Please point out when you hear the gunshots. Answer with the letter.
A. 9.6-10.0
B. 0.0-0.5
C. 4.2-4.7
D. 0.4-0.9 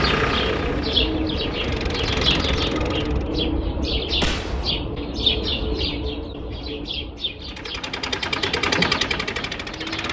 C.